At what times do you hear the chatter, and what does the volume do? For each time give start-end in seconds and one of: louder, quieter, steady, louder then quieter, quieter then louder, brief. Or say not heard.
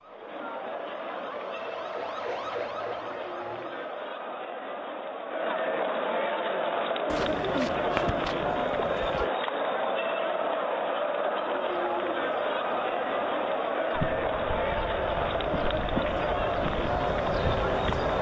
0.0-18.1 louder.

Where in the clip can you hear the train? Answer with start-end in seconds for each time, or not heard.
13.9-17.9.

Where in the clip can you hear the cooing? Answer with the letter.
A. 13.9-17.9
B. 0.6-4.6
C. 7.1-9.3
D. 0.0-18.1
C.